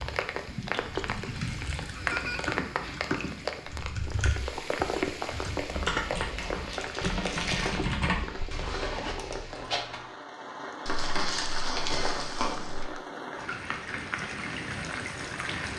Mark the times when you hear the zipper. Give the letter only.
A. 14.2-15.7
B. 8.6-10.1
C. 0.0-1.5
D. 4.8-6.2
B.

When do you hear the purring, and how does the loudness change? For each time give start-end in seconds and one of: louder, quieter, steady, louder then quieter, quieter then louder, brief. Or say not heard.
not heard.